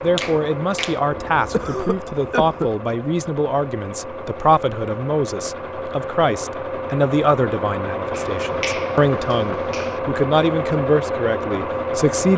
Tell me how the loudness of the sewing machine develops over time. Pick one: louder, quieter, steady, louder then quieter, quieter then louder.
louder.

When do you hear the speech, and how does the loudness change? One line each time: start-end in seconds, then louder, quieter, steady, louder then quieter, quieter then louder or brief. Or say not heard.
0.0-12.3 steady.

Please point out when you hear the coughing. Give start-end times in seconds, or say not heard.
1.1-2.7.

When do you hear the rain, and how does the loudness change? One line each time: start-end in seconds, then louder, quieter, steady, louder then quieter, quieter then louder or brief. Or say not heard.
not heard.